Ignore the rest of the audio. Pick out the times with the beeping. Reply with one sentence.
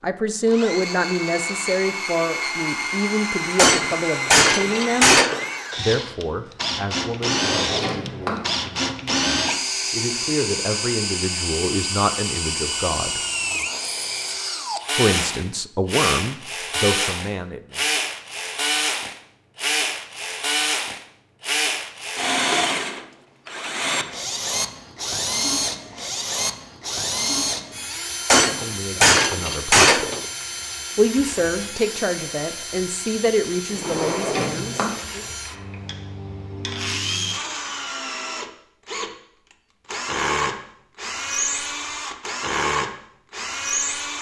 You can't hear the beeping here.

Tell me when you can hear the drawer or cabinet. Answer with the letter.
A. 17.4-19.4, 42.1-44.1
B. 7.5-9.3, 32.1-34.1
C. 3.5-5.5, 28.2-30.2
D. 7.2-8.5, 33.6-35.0
D.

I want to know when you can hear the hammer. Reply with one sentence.
You can hear the hammer from 3.5 to 5.5 s and from 28.2 to 30.2 s.